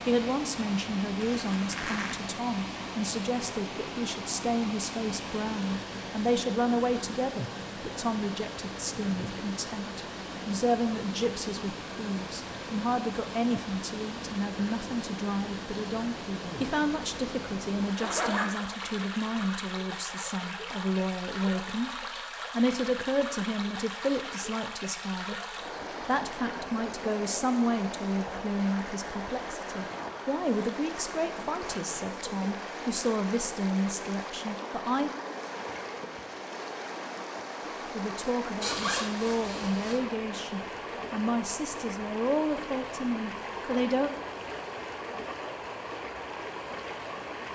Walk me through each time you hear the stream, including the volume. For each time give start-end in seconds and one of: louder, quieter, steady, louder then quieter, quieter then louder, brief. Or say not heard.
0.0-47.5 steady.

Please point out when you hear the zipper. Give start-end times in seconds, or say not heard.
1.2-2.2, 17.9-19.5, 38.6-40.0.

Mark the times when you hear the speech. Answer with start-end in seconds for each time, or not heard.
0.1-35.1, 37.8-44.1.